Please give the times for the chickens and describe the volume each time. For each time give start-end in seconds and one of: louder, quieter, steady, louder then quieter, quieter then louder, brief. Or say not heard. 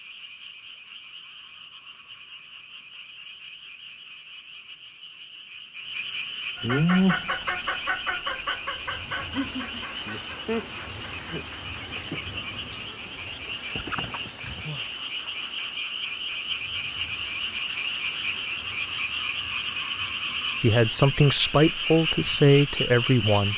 6.6-14.7 quieter.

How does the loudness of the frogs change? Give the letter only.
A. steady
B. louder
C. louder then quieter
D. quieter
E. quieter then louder
B.